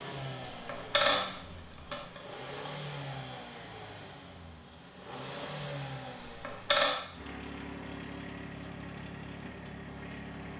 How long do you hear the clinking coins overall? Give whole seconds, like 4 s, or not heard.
2 s.